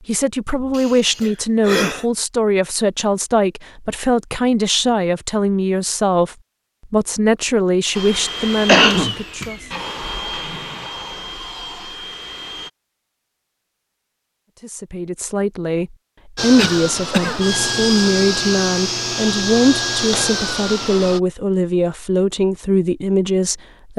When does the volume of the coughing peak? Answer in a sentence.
The loudest moment of the coughing is at 9 seconds.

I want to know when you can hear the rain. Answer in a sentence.
You can't hear the rain here.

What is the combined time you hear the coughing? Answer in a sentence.
The coughing can be heard for 3 seconds in total.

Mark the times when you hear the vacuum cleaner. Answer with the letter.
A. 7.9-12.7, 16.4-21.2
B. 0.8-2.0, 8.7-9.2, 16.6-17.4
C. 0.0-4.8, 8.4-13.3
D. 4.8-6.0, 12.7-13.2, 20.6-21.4
A.